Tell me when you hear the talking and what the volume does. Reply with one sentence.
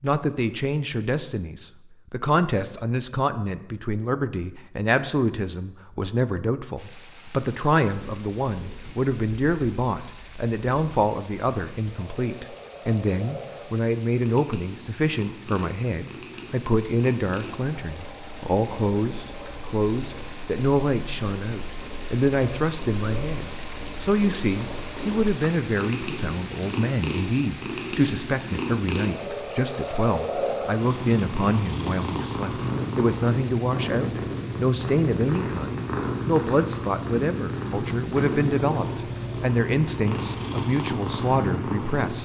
You can hear the talking from 0.0 to 42.1 s, at a steady volume.